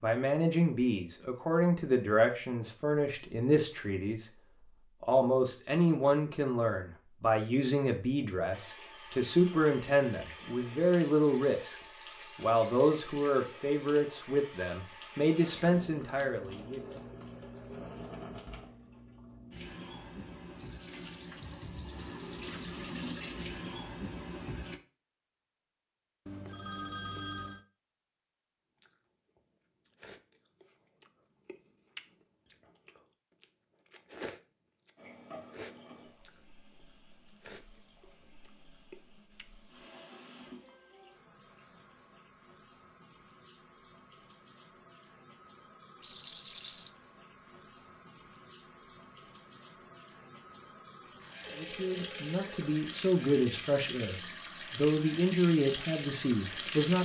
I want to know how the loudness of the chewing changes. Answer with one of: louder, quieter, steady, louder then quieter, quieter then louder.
louder then quieter.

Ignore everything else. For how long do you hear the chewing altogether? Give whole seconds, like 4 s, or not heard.
10 s.